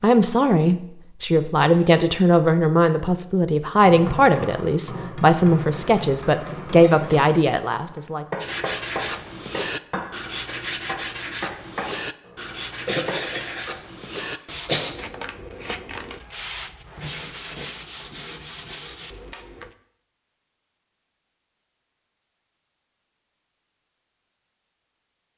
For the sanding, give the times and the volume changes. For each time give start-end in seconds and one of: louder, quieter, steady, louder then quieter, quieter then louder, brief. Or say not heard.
8.4-19.8 quieter.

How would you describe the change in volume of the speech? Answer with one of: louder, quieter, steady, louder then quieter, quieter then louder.
steady.